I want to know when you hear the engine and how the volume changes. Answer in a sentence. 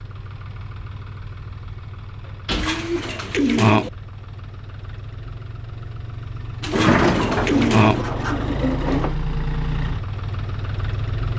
You can hear the engine from 0.0 to 11.3 s, getting louder.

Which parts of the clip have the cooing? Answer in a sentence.
You can hear the cooing from 2.5 to 3.9 s and from 6.6 to 8.1 s.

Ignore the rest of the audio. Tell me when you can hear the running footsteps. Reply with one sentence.
The running footsteps can't be heard in this clip.